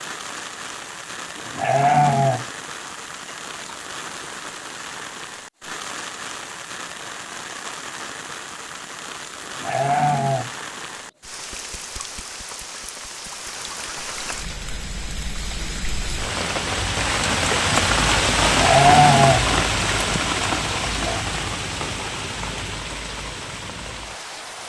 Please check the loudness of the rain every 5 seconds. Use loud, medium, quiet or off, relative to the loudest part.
quiet, quiet, quiet, loud, medium.